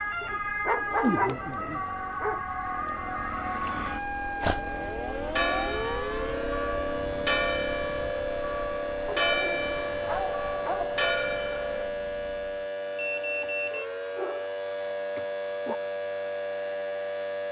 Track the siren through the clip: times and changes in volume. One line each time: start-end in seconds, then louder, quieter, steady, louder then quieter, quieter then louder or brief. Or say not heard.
0.0-17.4 steady.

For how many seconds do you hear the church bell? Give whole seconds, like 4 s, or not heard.
7 s.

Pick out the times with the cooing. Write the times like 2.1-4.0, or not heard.
not heard.